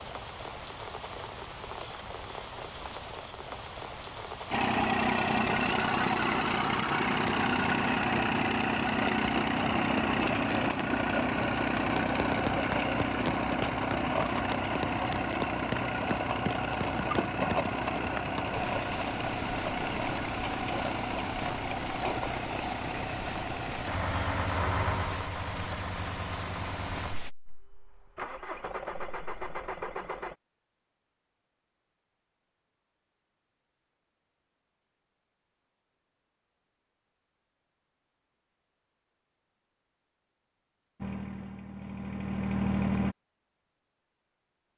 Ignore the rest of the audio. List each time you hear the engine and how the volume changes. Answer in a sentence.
You can hear the engine from 4.5 to 30.4 s, getting quieter; and briefly from 41.0 to 43.1 s.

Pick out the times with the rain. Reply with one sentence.
The rain can be heard from 0.0 to 27.3 s.